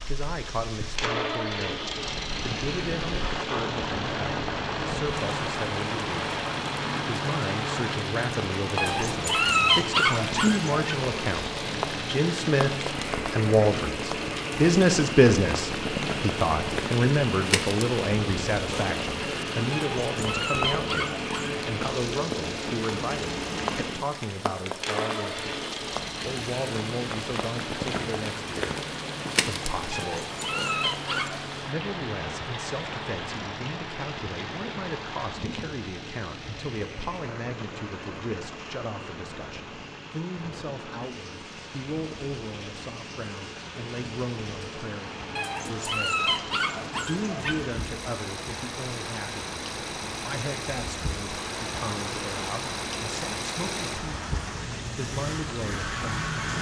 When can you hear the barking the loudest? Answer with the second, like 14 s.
10 s.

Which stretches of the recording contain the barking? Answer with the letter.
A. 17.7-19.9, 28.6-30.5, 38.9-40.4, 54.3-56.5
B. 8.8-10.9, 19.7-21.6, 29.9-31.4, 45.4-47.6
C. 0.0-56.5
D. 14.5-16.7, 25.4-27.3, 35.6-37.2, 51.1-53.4
B.